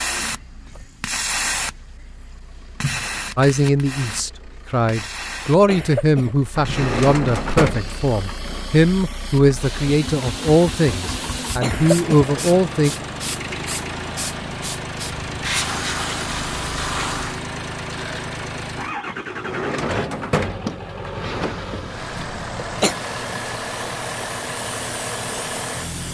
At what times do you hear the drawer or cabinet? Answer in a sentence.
You can hear the drawer or cabinet from 6.5 to 8.7 s and from 19.3 to 21.6 s.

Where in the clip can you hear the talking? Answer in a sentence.
You can hear the talking from 3.4 to 12.9 s.